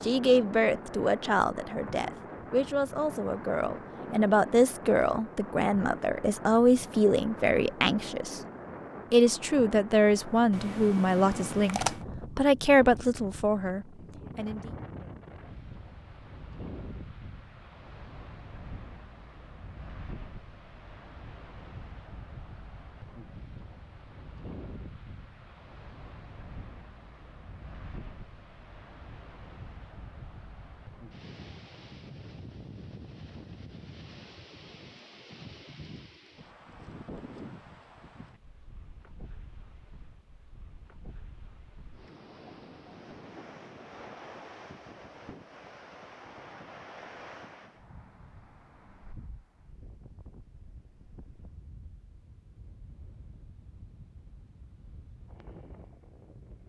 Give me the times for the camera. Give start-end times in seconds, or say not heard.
10.5-12.1.